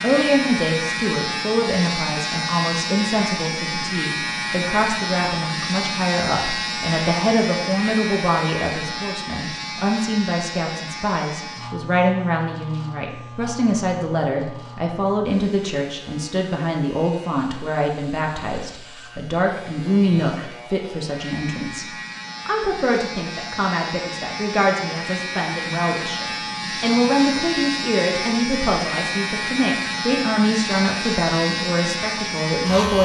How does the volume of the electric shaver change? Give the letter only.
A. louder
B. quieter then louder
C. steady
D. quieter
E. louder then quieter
B.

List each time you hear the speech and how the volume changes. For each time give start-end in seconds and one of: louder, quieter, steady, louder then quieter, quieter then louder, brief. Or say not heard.
0.0-33.0 steady.